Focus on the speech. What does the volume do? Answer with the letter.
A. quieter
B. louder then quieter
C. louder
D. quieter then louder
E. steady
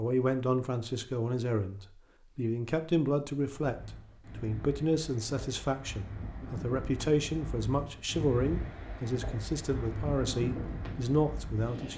E.